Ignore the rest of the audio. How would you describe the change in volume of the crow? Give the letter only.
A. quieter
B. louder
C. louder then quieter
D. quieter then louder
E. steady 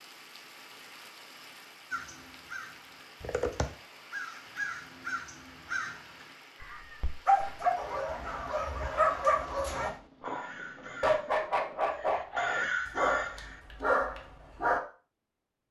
D.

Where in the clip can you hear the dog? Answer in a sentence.
The dog can be heard from 7.2 to 14.8 s.